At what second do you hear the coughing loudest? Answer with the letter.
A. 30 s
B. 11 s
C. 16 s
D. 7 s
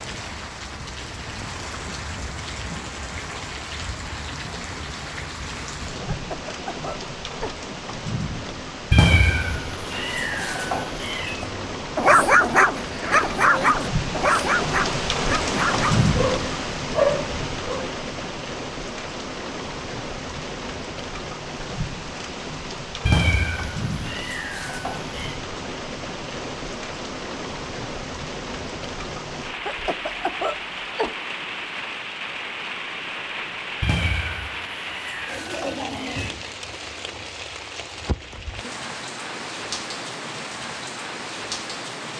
A.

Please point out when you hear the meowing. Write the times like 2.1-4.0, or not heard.
8.9-11.4, 23.1-25.4, 33.8-36.3.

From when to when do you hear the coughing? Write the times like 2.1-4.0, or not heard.
6.1-7.6, 29.6-31.2.